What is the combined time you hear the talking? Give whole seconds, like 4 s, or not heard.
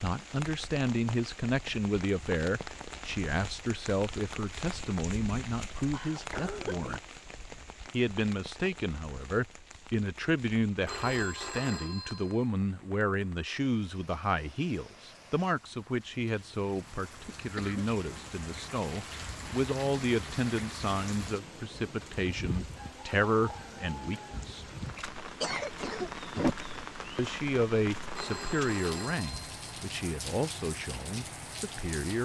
29 s.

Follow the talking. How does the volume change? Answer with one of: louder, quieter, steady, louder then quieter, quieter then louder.
steady.